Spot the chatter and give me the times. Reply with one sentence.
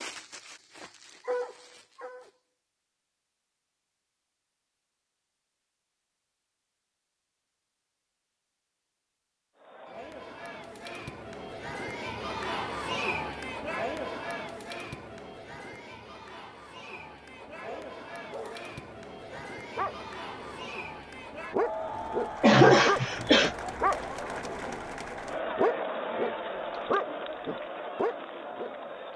The chatter can be heard from 9.6 to 29.1 s.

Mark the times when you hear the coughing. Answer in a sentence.
You can hear the coughing from 22.4 to 23.5 s.